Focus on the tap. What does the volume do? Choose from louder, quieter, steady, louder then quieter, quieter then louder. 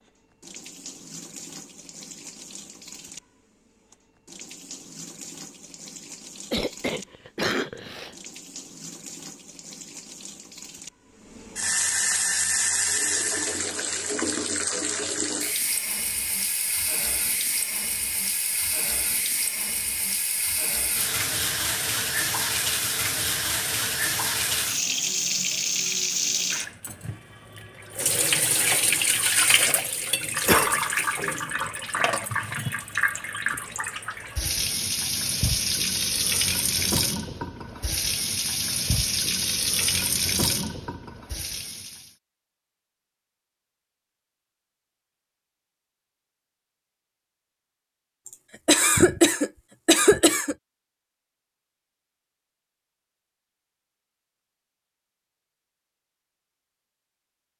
louder.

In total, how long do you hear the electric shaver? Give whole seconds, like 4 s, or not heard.
not heard.